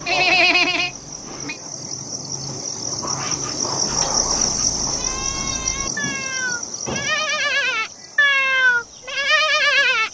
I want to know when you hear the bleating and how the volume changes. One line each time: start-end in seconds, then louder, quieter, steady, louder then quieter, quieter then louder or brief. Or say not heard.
0.0-1.6 brief
3.9-10.0 louder.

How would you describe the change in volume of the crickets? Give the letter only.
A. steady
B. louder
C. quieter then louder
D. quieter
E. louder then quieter
E.